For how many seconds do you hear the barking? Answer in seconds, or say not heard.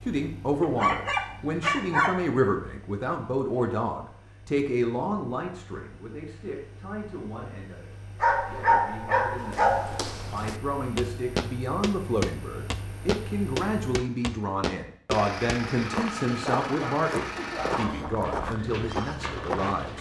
5 s.